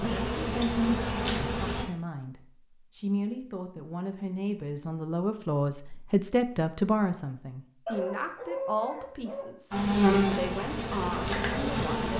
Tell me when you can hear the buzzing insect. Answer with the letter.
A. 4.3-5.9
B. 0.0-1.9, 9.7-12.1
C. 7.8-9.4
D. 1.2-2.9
B.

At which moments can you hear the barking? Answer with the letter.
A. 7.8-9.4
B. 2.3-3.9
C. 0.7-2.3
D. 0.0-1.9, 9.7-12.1
A.